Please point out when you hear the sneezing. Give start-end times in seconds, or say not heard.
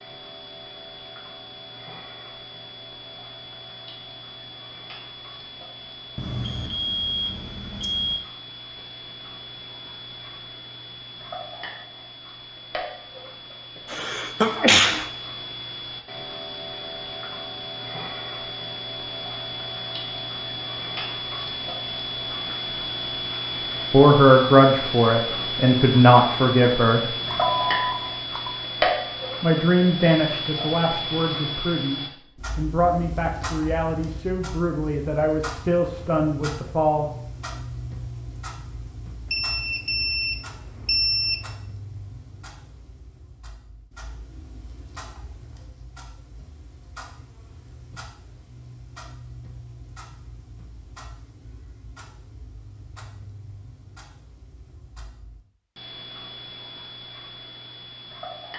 13.9-15.1.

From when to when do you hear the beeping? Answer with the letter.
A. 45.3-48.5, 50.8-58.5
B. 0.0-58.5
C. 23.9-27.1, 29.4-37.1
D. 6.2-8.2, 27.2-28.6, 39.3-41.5
D.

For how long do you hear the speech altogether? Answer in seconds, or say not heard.
11 s.